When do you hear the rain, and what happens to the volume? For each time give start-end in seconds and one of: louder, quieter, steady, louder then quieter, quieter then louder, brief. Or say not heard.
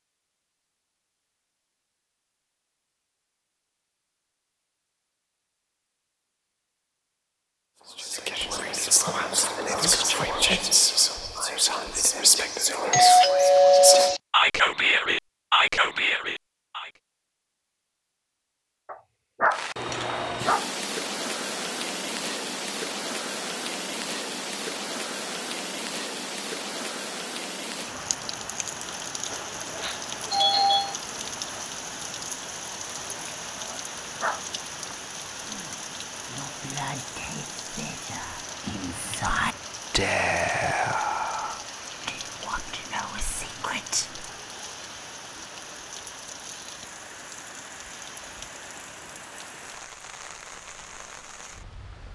19.5-52.1 quieter.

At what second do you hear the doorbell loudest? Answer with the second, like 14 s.
14 s.